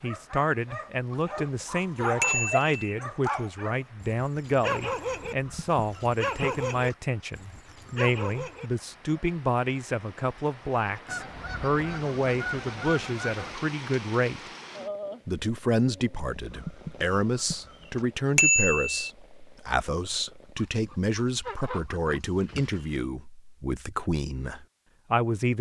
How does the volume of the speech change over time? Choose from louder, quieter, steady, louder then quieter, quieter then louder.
steady.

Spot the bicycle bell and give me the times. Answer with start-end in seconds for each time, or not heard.
2.2-3.0, 18.4-19.0.